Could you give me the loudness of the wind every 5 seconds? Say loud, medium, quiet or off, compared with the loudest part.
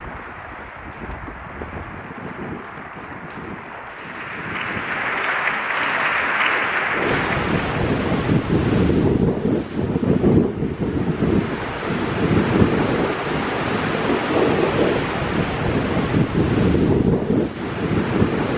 quiet, loud, loud, loud.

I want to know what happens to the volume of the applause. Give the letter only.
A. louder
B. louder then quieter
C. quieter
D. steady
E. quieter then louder
A.